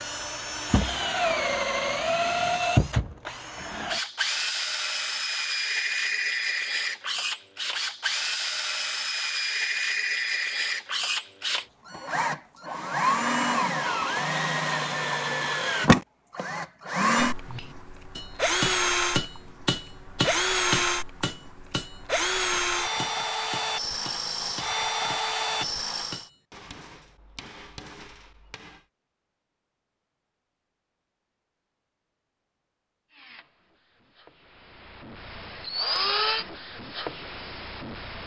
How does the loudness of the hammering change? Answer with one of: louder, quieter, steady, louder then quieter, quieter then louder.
quieter.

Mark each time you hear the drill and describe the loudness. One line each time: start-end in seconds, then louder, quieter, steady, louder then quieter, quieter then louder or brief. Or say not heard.
0.0-26.3 steady
33.1-38.2 louder then quieter.